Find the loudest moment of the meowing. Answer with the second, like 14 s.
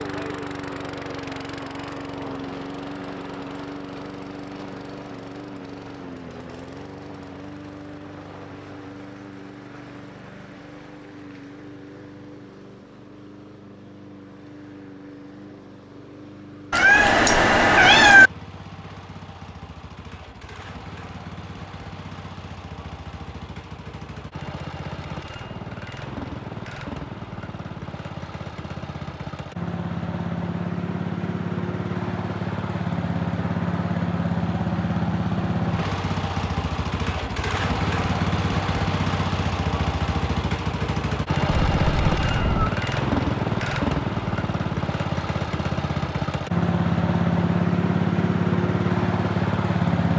18 s.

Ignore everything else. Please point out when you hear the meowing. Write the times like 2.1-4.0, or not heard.
16.7-18.3, 41.5-42.8.